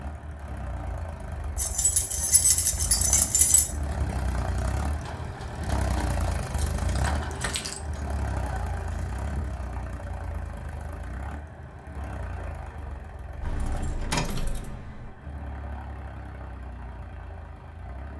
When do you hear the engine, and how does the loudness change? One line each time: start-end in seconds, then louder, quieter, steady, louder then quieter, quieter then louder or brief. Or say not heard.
0.0-18.1 louder then quieter.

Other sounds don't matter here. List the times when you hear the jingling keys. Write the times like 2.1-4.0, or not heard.
1.6-3.8, 6.5-7.8, 13.4-15.2.